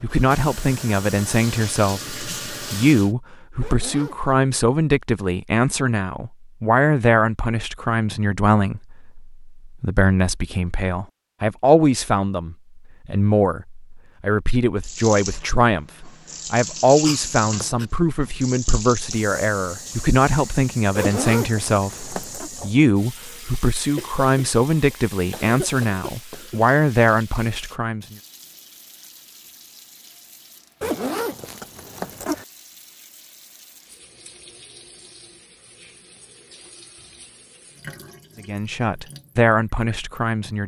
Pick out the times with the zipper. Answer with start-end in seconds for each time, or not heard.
3.6-4.3, 20.9-22.5, 30.8-32.5.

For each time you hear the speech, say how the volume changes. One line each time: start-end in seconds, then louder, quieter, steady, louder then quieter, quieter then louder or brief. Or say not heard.
0.0-28.1 steady
38.4-40.6 brief.